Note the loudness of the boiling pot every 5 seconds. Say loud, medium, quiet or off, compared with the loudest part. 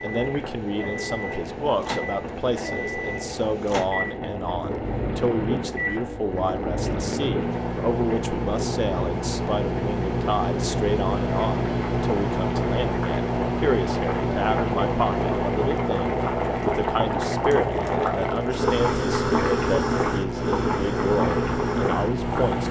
medium, medium, medium, loud, loud.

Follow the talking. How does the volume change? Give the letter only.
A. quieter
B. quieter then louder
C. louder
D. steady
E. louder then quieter
D.